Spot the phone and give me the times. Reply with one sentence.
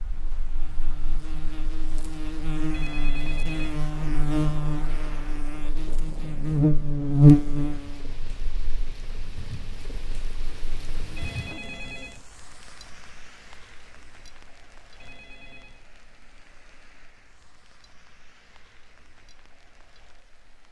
The phone can be heard from 2.7 to 3.8 s, from 11.2 to 12.2 s and from 15.0 to 15.8 s.